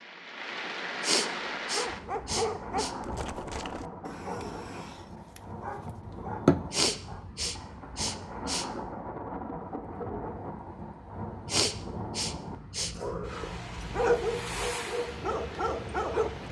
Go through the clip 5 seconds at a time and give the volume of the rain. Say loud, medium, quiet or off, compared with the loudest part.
loud, loud, loud, medium.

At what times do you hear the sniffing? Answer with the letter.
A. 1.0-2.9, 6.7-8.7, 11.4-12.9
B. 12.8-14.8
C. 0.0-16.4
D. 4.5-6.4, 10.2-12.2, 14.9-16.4
A.